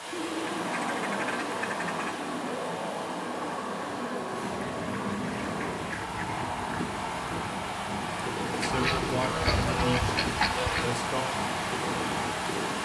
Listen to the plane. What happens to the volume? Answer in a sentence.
The loudness of the plane stays about the same.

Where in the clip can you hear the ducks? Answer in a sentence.
You can hear the ducks from 0.1 to 2.1 s, from 4.4 to 6.5 s and from 8.6 to 10.9 s.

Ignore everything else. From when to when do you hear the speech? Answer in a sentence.
The speech can be heard from 8.6 to 11.2 s.